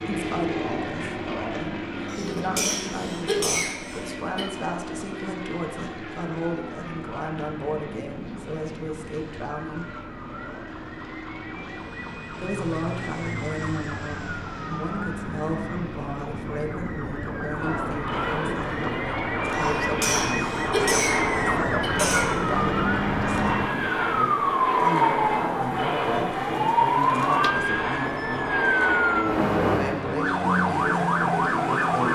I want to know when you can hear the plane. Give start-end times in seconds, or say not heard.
0.0-32.1.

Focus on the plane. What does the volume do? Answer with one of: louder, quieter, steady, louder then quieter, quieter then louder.
quieter then louder.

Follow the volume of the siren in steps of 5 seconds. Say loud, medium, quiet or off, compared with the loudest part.
quiet, quiet, quiet, medium, loud, loud, loud.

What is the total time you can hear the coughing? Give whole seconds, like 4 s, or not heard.
5 s.